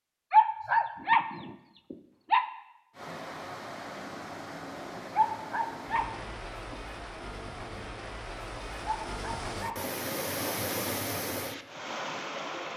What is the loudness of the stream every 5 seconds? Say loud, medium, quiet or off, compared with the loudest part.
medium, medium, loud.